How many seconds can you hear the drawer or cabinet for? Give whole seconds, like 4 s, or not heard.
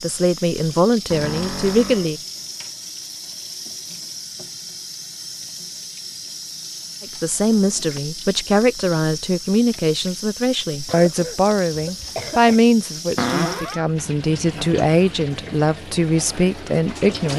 2 s.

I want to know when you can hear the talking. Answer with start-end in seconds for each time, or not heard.
0.0-2.2, 7.0-17.3.